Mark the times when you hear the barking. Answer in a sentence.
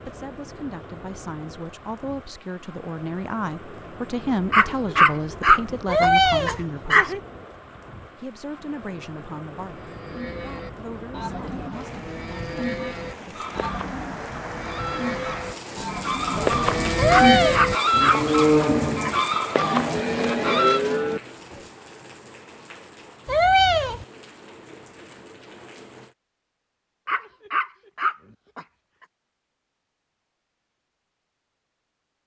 The barking can be heard from 4.5 to 7.2 s, from 17.1 to 19.1 s and from 27.1 to 28.6 s.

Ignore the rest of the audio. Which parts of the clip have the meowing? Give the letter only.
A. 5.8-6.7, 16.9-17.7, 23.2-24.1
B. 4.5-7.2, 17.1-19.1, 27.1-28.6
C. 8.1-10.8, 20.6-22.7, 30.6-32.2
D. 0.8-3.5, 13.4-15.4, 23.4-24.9
A.